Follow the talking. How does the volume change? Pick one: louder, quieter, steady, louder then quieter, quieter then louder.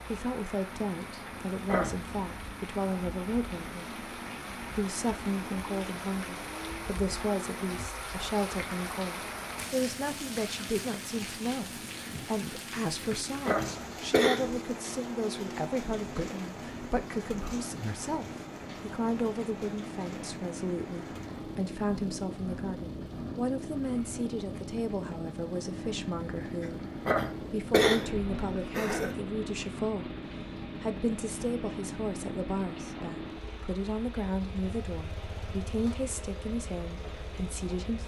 steady.